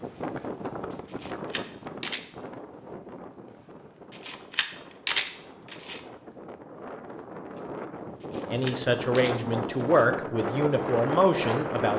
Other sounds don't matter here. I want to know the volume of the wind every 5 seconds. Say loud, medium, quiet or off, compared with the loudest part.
medium, medium, loud.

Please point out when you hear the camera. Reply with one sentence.
You can hear the camera from 1.1 to 2.2 s, from 4.1 to 6.0 s and from 8.2 to 10.1 s.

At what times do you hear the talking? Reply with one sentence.
The talking can be heard from 8.4 to 11.9 s.